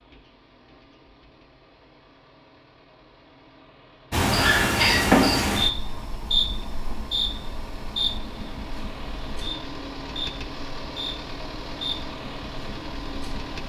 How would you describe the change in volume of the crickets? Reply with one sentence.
The loudness of the crickets goes down.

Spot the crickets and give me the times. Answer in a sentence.
The crickets can be heard from 4.1 to 13.6 s.